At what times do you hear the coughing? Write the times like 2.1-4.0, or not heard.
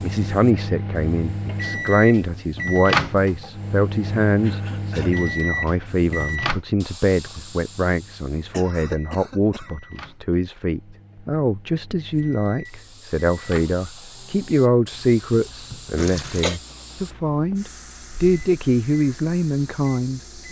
4.4-5.2, 8.3-9.8, 15.9-16.6.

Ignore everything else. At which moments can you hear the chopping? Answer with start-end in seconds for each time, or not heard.
not heard.